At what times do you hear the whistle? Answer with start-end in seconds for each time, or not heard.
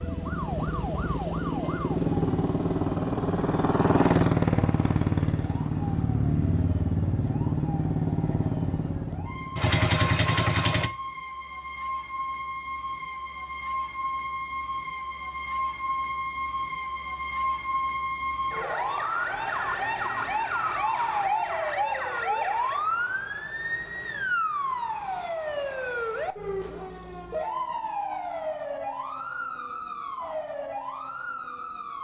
not heard.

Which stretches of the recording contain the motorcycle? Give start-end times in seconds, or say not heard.
0.0-10.9.